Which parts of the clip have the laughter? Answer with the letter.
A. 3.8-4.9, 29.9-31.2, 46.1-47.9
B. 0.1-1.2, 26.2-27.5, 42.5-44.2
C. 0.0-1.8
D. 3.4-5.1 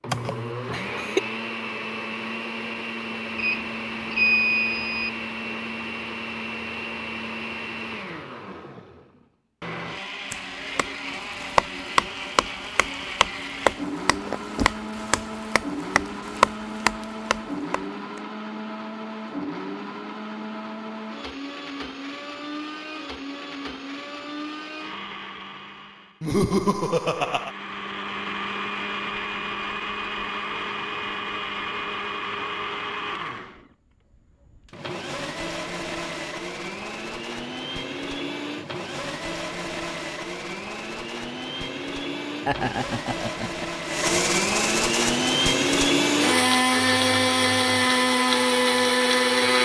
B.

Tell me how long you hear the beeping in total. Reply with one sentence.
The beeping can be heard for 2 seconds in total.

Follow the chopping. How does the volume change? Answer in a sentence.
The volume of the chopping goes down, then up.